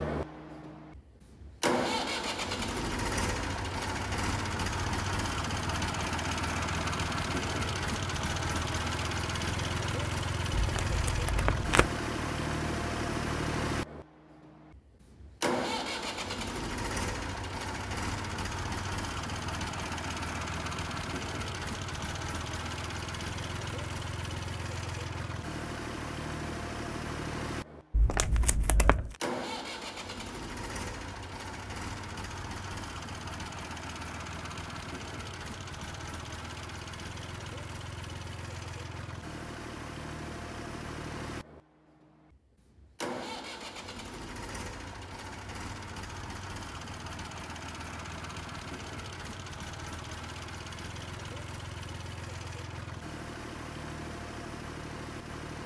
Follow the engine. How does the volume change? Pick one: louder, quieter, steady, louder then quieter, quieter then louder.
quieter.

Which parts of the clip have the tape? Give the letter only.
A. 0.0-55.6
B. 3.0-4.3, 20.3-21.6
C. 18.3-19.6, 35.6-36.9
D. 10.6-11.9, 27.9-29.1
D.